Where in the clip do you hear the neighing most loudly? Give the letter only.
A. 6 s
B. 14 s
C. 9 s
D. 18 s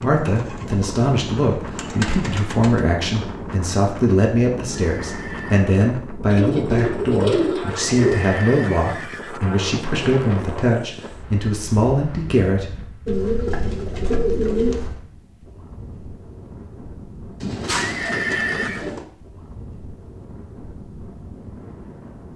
D.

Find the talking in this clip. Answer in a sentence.
You can hear the talking from 0.0 to 12.7 s.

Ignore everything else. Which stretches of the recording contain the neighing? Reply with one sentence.
The neighing can be heard from 4.8 to 5.7 s, from 7.8 to 9.4 s and from 17.7 to 18.9 s.